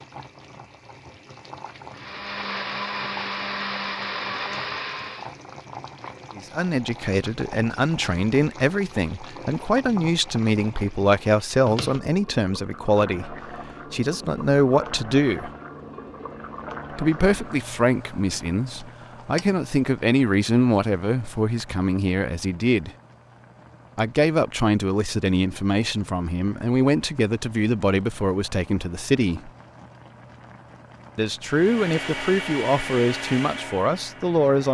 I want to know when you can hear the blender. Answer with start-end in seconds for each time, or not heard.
1.9-5.3, 31.4-34.7.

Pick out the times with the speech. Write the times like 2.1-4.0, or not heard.
6.3-15.5, 16.9-22.9, 23.9-29.5, 31.1-34.7.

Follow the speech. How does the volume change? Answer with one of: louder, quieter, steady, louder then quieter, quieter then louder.
steady.